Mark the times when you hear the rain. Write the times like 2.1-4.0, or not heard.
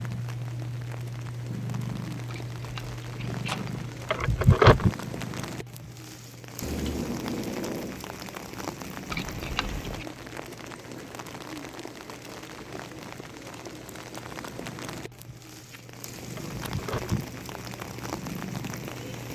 0.0-19.2.